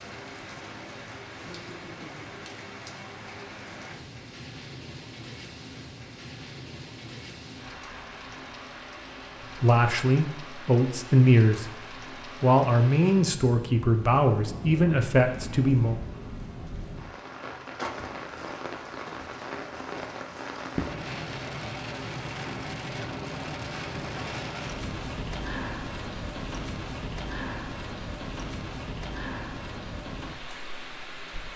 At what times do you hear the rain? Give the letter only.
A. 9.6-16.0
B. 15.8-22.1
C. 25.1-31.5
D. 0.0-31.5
D.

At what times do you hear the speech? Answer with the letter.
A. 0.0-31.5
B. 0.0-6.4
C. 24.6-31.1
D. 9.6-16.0
D.